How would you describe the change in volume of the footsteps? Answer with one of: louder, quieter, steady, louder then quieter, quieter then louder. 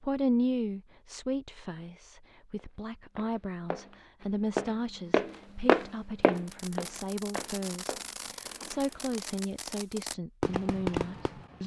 louder then quieter.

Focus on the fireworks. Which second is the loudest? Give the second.
11 s.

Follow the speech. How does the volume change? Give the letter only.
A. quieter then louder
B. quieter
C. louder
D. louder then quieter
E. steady
E.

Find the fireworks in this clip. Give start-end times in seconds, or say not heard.
6.3-11.6.